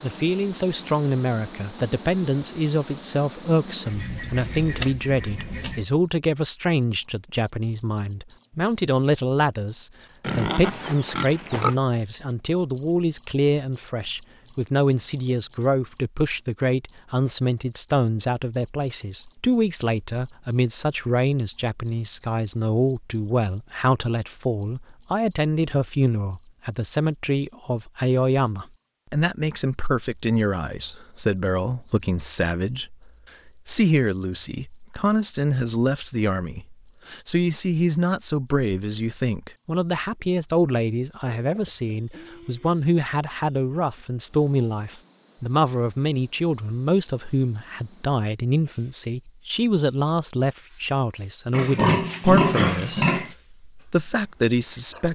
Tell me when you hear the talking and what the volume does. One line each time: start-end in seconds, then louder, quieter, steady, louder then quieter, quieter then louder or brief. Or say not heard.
0.0-55.1 steady.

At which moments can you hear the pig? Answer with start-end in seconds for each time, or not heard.
10.2-11.8, 51.5-53.4.